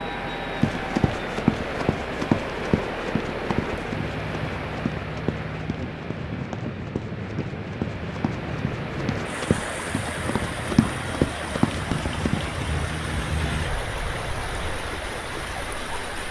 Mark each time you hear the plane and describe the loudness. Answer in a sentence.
The plane can be heard from 0.0 to 16.2 s, at a steady volume.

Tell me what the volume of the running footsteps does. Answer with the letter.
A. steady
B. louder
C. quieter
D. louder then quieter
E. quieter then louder
E.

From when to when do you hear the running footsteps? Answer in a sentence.
The running footsteps can be heard from 0.6 to 12.5 s.